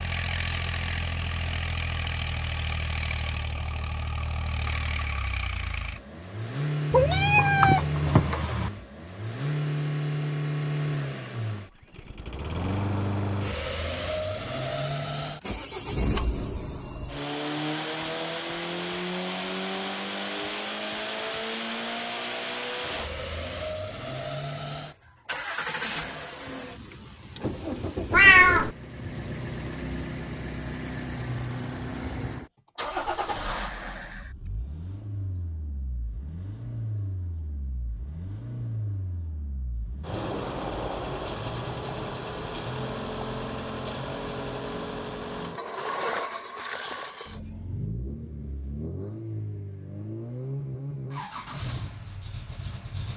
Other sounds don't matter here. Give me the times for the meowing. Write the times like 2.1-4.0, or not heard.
6.9-8.7, 28.1-28.7.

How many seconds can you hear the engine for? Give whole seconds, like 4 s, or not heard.
53 s.